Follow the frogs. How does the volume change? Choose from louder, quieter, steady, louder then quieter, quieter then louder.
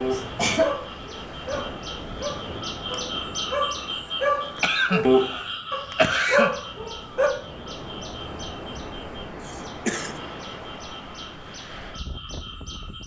louder then quieter.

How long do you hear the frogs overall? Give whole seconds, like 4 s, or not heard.
13 s.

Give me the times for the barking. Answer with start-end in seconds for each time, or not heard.
0.6-7.3.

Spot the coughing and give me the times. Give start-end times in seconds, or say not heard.
0.1-0.8, 4.5-6.5, 9.4-10.2.